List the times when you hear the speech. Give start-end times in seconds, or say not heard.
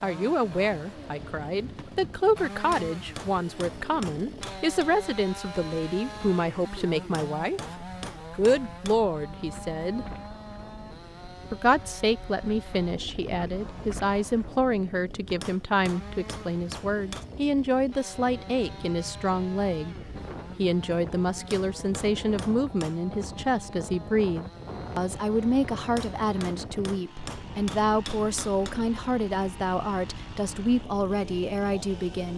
0.0-7.6, 8.3-10.1, 11.5-19.9, 20.6-32.3.